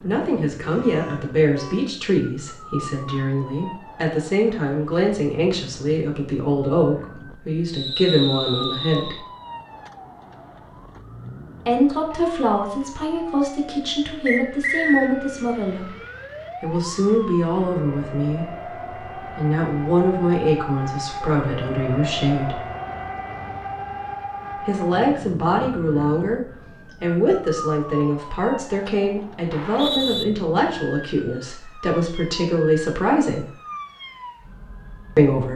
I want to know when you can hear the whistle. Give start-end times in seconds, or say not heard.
7.7-9.2, 14.2-15.1, 29.5-30.2.